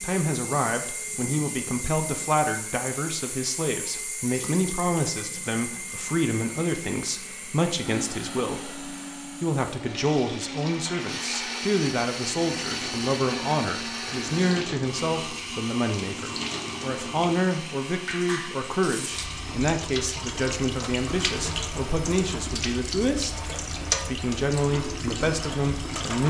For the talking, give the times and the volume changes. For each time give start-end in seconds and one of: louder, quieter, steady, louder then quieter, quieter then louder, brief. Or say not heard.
0.0-26.2 steady.